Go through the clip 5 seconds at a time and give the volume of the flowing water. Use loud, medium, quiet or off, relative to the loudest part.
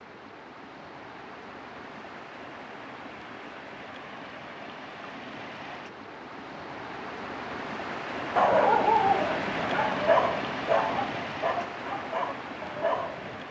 medium, loud, loud.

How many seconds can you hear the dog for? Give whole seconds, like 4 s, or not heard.
5 s.